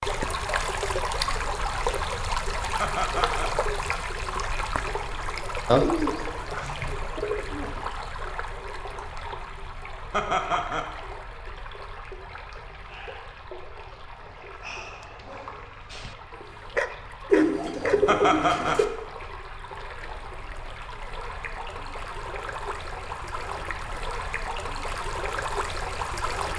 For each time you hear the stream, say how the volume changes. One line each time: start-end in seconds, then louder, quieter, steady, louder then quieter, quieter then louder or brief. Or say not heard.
0.0-26.5 quieter then louder.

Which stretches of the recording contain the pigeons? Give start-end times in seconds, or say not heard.
5.7-7.7, 17.3-18.9.